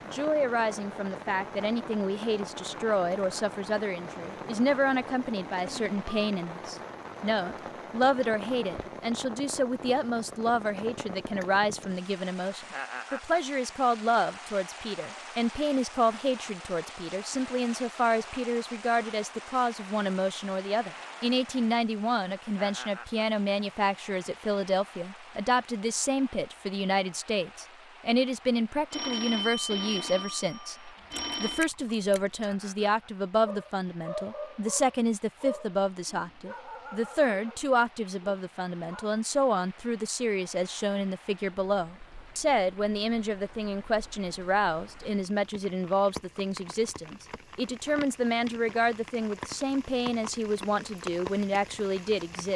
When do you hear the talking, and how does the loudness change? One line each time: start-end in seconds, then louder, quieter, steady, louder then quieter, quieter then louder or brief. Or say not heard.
0.1-52.5 steady.